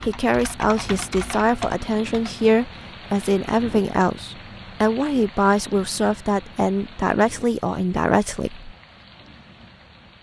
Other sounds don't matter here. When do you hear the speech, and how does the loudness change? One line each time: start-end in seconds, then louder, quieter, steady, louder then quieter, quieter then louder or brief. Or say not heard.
0.0-8.8 steady.